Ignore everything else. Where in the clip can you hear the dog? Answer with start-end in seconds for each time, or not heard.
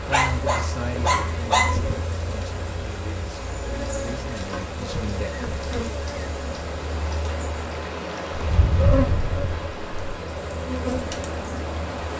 0.1-2.0, 8.3-10.2.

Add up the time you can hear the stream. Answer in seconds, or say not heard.
12 s.